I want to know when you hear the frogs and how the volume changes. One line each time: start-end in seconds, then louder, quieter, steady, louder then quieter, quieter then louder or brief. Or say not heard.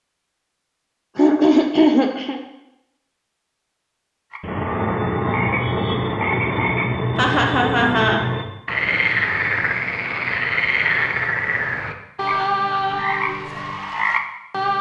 4.3-14.7 steady.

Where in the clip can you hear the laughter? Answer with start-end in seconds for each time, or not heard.
1.1-2.4, 7.2-8.2, 12.2-13.1.